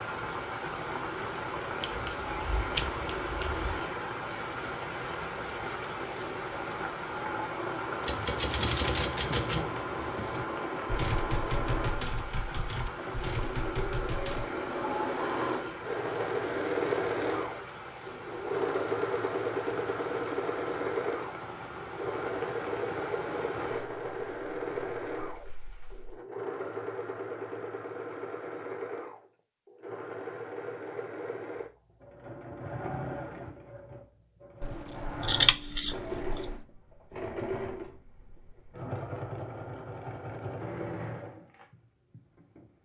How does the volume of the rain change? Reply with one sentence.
The volume of the rain goes down.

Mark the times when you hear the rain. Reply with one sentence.
The rain can be heard from 0.0 to 26.2 s.